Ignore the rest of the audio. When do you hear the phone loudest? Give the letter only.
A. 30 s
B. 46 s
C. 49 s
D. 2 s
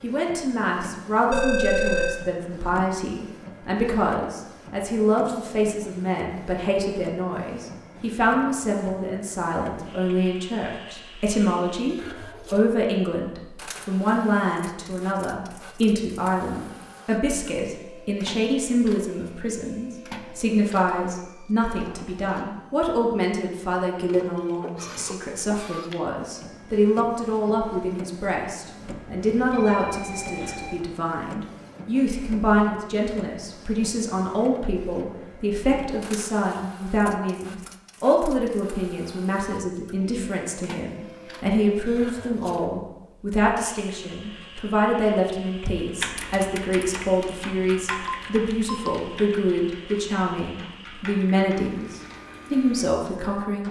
D.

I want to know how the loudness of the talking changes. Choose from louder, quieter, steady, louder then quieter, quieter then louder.
steady.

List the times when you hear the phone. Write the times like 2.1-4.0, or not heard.
1.3-2.2, 28.8-30.8, 47.9-48.9.